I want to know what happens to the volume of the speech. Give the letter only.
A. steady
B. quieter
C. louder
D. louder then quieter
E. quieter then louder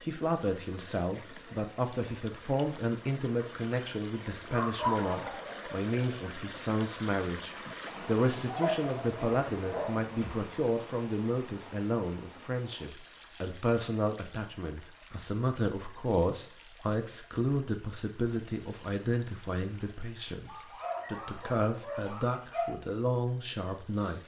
A.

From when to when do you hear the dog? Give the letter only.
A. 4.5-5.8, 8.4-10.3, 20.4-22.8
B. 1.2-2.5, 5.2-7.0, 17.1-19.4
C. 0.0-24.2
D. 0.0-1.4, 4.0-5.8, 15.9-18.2
A.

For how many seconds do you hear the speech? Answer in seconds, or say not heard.
24 s.